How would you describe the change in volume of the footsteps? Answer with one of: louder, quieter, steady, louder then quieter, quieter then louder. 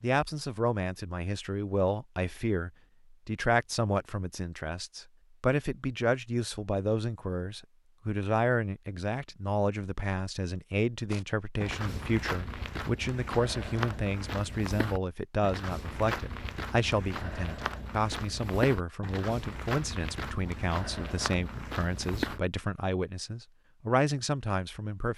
steady.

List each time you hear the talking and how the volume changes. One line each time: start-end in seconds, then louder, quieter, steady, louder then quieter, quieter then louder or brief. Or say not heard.
0.0-25.1 steady.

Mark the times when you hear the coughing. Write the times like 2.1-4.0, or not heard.
not heard.